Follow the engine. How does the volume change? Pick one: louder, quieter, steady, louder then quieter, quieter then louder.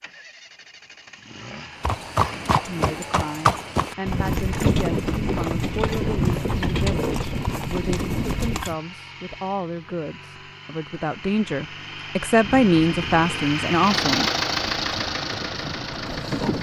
louder.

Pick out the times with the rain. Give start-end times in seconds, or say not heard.
not heard.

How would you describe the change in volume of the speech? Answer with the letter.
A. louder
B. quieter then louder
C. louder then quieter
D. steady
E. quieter
A.